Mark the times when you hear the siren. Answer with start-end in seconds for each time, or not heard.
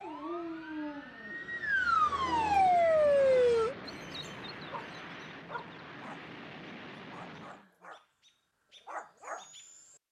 0.0-3.8.